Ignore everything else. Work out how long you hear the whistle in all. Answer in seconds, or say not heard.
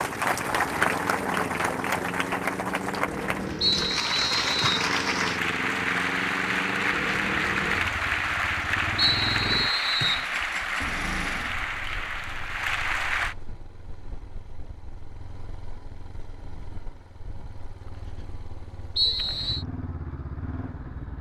3 s.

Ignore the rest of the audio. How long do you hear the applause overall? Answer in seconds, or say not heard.
13 s.